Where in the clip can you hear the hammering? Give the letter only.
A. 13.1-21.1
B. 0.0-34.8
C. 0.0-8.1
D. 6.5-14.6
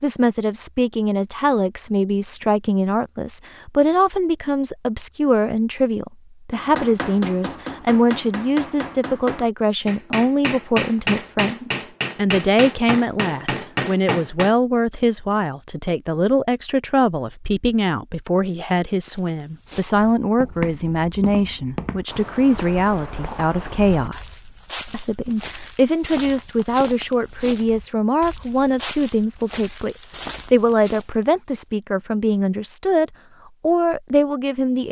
D.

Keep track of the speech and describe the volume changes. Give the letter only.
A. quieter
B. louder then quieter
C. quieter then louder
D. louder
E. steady
E.